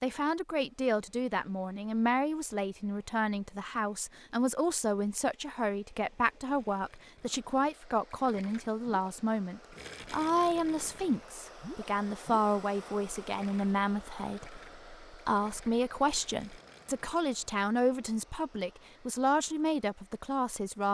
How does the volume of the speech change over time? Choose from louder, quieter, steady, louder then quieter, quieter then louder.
steady.